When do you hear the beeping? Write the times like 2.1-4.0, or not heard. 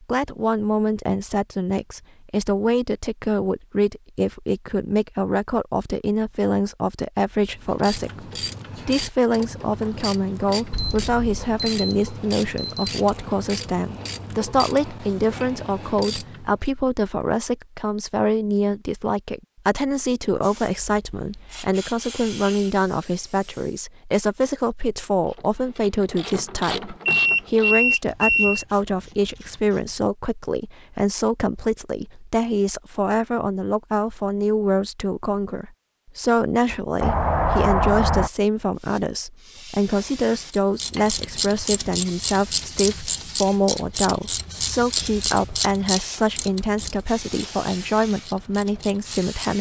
10.7-12.9, 27.1-28.6, 37.0-38.3.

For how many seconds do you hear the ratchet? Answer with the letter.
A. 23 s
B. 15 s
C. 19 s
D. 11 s
A.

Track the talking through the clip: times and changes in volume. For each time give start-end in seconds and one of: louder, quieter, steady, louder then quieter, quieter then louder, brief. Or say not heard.
0.0-49.5 steady.